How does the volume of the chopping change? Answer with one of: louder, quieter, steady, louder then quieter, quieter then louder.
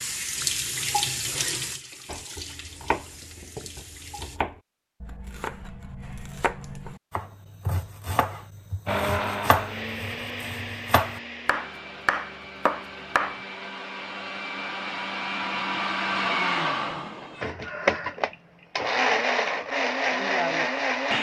louder.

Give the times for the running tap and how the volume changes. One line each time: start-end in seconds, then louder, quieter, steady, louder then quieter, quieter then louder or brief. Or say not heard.
0.0-4.4 quieter.